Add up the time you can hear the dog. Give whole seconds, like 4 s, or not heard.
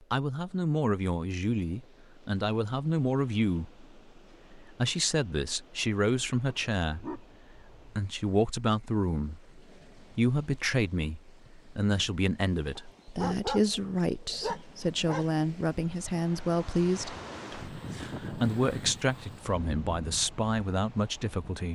4 s.